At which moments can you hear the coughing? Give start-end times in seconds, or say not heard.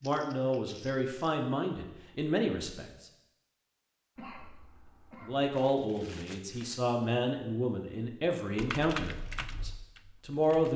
4.2-5.3.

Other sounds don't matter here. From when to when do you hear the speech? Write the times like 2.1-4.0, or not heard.
0.0-3.0, 5.2-10.7.